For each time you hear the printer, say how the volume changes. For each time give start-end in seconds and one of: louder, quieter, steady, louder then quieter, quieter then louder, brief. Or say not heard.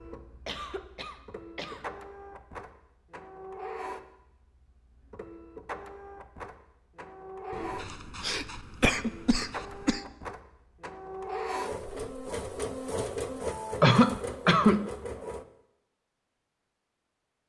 0.0-15.4 louder.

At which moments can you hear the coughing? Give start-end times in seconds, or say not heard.
0.5-1.9, 7.5-10.0, 13.8-14.9.